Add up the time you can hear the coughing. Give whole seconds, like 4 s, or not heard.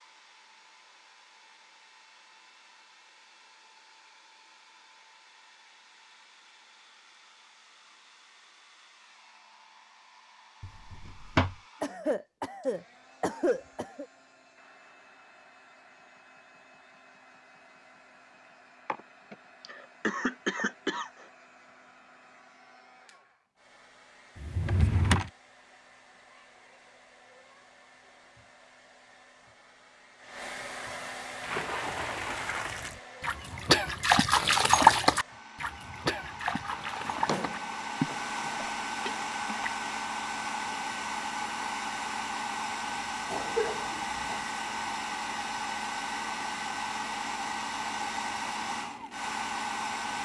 6 s.